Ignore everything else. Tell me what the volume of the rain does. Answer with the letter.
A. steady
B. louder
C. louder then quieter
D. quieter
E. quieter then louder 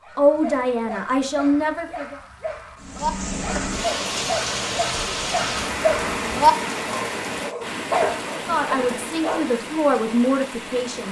D.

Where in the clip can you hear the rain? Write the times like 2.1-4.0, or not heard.
2.8-11.0.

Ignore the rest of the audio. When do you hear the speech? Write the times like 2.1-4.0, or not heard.
0.1-2.2, 8.3-11.0.